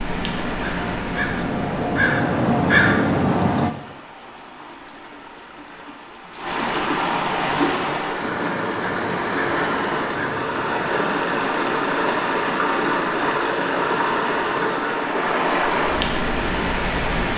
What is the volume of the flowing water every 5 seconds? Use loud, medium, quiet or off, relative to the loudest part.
medium, loud, loud, loud.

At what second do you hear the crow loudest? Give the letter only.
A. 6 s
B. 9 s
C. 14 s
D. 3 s
D.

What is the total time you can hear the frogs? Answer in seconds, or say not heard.
not heard.